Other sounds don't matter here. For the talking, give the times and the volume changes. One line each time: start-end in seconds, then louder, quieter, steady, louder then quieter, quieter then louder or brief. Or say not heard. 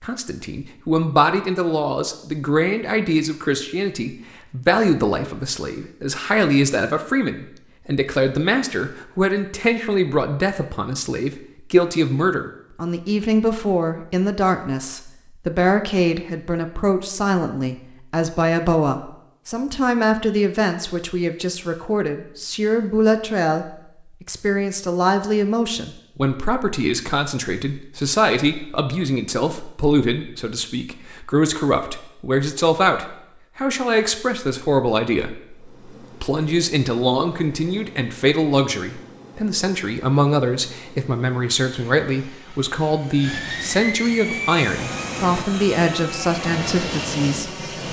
0.0-47.6 steady.